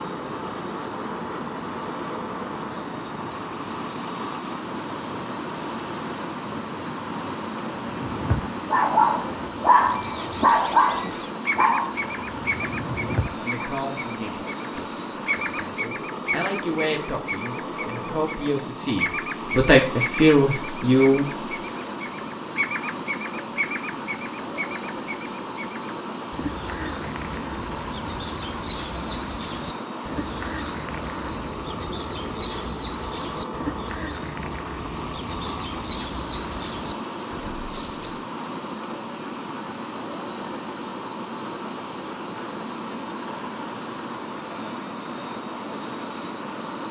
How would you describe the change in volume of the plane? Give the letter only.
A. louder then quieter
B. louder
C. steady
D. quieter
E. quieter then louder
C.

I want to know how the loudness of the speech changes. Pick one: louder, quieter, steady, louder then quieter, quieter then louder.
louder.